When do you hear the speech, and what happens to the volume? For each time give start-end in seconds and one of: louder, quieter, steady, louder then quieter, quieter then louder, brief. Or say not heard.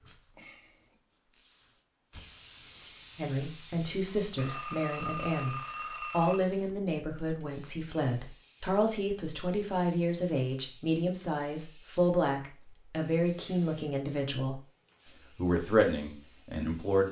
3.1-14.6 steady
15.3-17.0 brief.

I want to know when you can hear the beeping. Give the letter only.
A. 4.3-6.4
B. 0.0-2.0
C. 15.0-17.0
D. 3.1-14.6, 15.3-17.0
A.